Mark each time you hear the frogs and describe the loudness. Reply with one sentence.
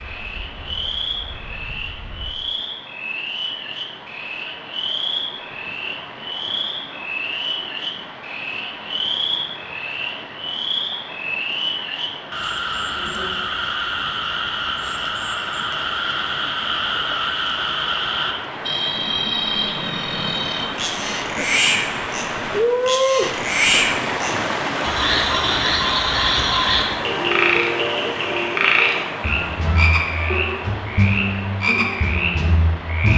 You can hear the frogs from 0.0 to 33.1 s, getting louder.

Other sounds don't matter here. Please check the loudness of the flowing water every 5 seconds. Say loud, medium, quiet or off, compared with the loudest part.
quiet, quiet, quiet, medium, loud, loud, medium.